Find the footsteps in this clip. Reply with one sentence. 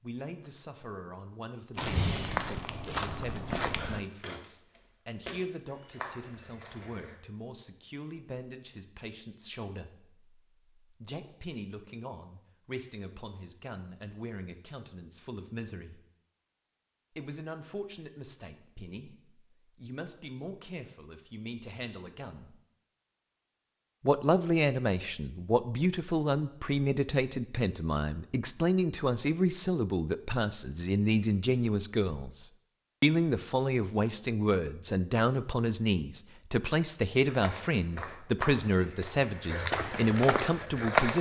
The footsteps can be heard from 1.8 to 7.2 s and from 37.2 to 41.1 s.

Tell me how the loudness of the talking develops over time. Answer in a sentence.
The volume of the talking goes up.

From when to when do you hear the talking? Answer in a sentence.
You can hear the talking from 0.0 to 16.0 s, from 17.1 to 22.6 s and from 24.0 to 41.1 s.